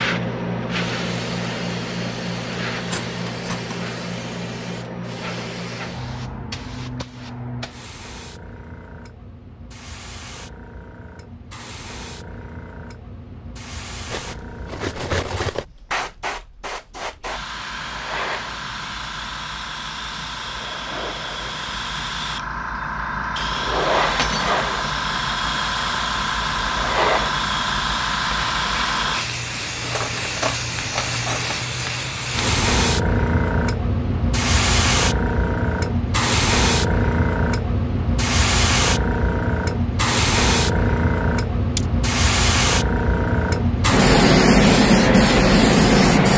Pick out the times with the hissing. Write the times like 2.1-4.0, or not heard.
0.0-46.3.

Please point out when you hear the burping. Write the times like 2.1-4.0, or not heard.
not heard.